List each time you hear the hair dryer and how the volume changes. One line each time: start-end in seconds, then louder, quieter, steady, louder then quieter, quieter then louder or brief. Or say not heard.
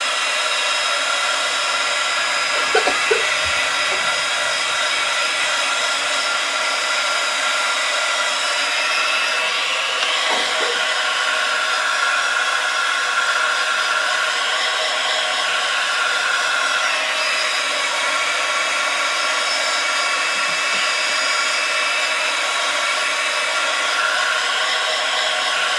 0.0-25.7 steady.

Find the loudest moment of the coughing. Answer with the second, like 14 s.
3 s.